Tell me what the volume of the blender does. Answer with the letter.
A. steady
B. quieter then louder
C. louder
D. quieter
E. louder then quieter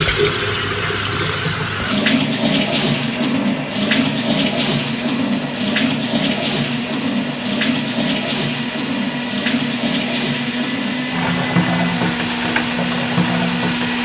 C.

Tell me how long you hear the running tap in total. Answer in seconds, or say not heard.
14 s.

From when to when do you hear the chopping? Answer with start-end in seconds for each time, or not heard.
not heard.